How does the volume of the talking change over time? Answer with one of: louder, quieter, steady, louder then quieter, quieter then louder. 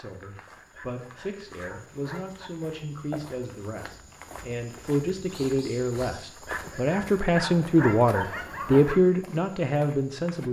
louder.